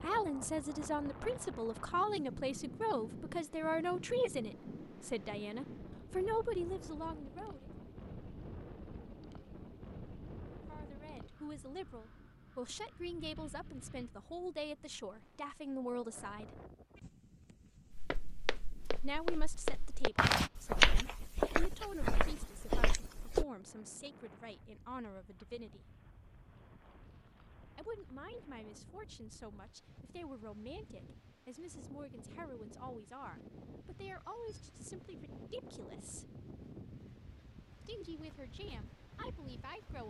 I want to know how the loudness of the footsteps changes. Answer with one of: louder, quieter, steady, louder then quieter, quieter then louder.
louder then quieter.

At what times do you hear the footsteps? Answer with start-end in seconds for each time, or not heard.
17.9-23.4.